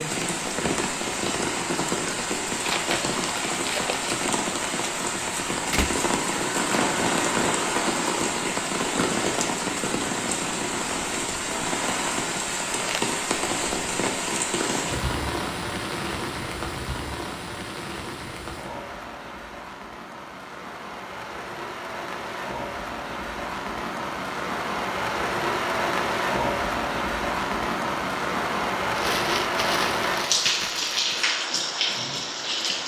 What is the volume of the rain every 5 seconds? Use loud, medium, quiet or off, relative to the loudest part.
loud, loud, loud, medium, medium, loud, loud.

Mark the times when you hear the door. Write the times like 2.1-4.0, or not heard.
5.2-5.9.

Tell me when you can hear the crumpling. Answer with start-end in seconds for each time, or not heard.
2.6-4.2, 12.8-13.2, 28.9-31.2.